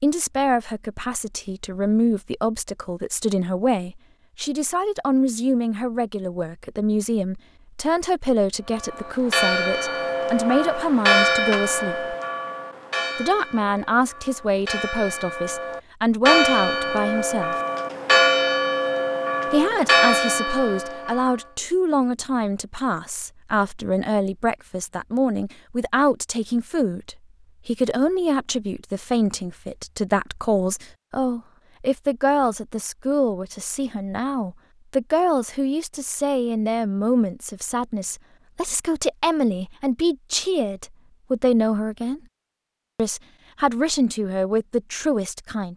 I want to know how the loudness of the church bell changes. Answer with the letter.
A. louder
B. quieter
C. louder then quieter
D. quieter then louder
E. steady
D.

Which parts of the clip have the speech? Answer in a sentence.
The speech can be heard from 0.0 to 12.2 s, from 13.2 to 17.6 s, from 19.5 to 42.2 s and from 43.0 to 45.7 s.